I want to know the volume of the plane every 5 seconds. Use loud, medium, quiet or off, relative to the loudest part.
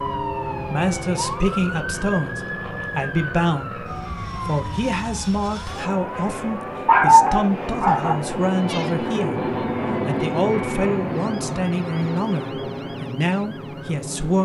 medium, loud, loud.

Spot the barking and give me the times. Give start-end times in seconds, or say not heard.
6.2-8.2.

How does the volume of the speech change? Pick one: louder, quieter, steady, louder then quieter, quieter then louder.
steady.